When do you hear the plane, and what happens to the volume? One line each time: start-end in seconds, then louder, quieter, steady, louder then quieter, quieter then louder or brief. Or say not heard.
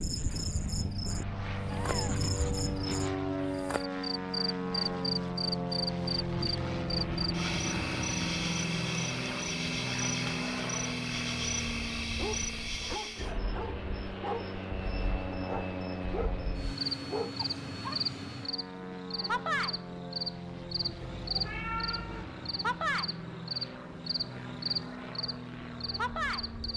0.0-26.7 quieter.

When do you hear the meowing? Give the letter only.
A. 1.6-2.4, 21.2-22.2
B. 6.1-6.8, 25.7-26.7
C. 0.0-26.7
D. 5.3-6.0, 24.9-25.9
A.